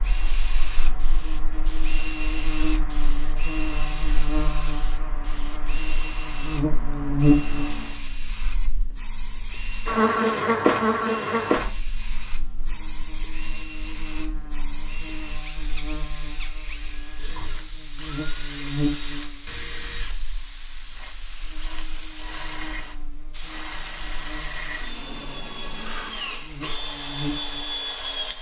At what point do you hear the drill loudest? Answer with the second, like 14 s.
28 s.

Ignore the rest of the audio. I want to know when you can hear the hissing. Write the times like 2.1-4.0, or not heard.
0.0-28.1.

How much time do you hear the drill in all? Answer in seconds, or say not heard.
28 s.